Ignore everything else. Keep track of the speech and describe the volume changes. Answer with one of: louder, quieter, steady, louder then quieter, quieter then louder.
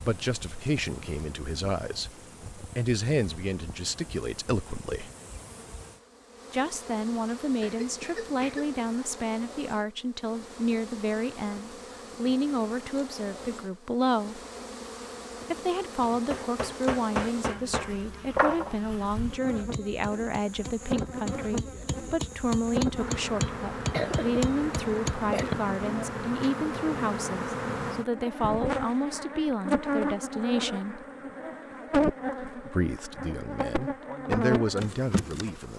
steady.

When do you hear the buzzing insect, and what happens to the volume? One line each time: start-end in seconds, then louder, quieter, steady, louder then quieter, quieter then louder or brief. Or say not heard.
0.0-35.7 louder.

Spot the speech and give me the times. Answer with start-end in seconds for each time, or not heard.
0.0-5.1, 6.5-14.4, 15.5-31.0, 32.5-35.7.